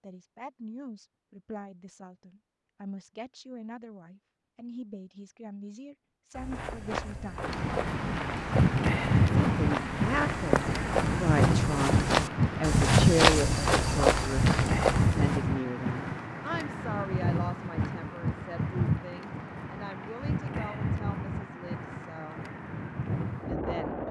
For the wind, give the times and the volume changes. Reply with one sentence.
The wind can be heard from 7.5 to 24.0 s, getting quieter.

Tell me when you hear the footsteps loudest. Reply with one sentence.
The volume of the footsteps peaks at 13 seconds.